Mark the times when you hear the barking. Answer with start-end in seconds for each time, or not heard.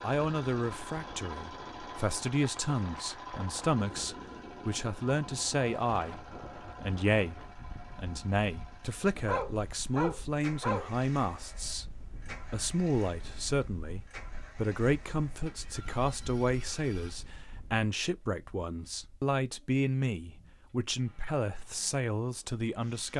9.2-10.9.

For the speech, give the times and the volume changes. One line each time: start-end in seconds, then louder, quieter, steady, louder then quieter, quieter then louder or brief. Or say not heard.
0.0-23.1 steady.